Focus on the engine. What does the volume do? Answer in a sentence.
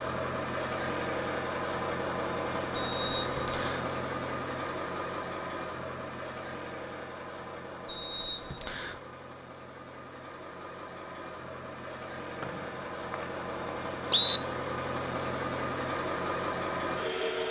The loudness of the engine goes down, then up.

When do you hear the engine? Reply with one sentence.
You can hear the engine from 0.0 to 17.4 s.